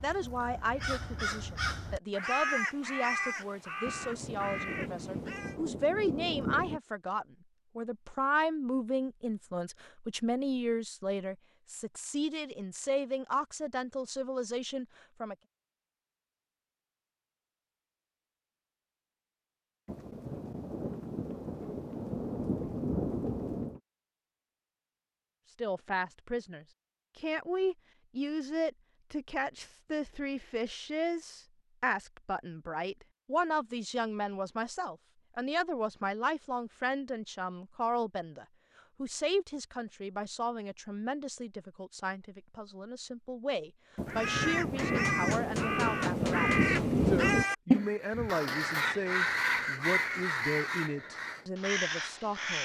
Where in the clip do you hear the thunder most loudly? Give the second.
47 s.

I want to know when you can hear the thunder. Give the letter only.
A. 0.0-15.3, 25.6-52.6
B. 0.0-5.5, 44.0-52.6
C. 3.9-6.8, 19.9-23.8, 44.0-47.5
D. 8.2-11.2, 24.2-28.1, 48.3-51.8
C.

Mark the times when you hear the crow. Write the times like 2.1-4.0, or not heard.
0.0-5.5, 44.0-52.6.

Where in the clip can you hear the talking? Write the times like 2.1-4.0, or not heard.
0.0-15.3, 25.6-52.6.